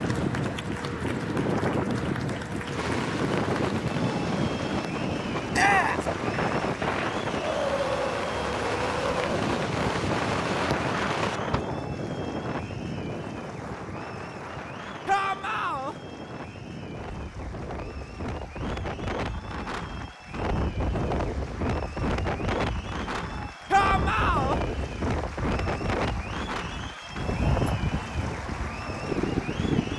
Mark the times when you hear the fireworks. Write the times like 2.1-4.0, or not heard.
2.7-11.7.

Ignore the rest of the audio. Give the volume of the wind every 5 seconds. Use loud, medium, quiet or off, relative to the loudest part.
loud, loud, loud, medium, loud, loud.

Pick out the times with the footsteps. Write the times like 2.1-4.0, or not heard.
not heard.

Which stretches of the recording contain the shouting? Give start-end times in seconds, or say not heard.
5.5-6.0, 15.1-15.9, 23.7-24.6.